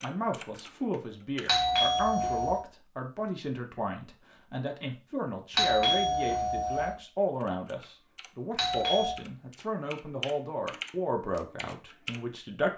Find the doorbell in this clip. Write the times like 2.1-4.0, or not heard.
1.4-2.6, 5.5-7.0, 8.6-9.2.